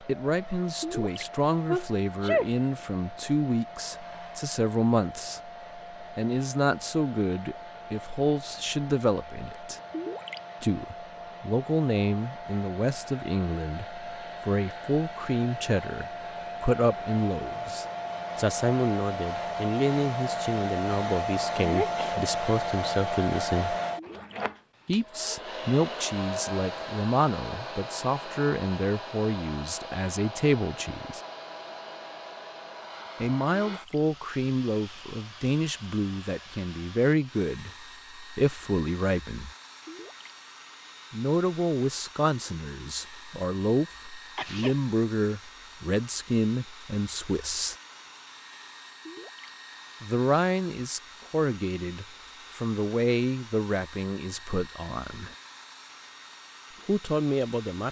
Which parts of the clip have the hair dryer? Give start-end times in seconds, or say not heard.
0.0-57.8.